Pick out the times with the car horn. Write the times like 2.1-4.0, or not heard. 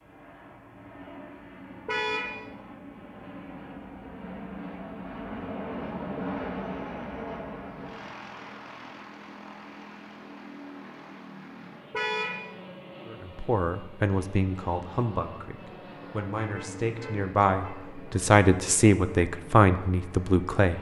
1.9-2.4, 11.9-12.4, 16.4-17.8.